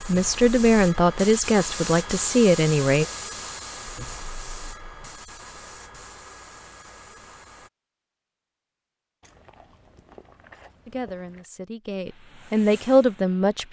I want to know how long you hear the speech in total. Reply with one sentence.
You can hear the speech for 6 seconds altogether.